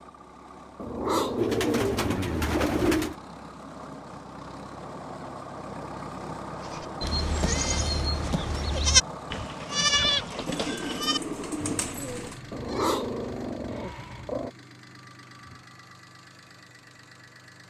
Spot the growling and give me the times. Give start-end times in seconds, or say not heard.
0.8-3.0, 12.5-14.5.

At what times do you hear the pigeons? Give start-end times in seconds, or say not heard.
1.4-3.1, 10.4-12.4.